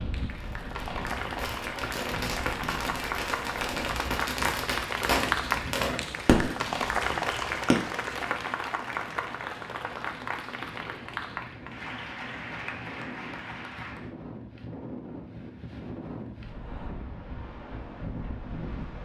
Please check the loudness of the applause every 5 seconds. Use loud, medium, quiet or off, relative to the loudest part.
loud, loud, medium, off.